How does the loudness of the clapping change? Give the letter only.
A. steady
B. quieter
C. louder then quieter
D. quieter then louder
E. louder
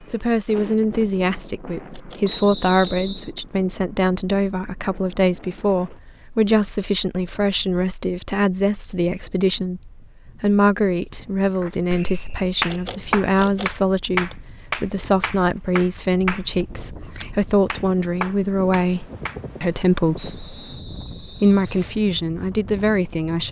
B.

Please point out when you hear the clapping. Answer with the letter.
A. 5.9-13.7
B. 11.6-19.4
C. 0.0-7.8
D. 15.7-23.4
B.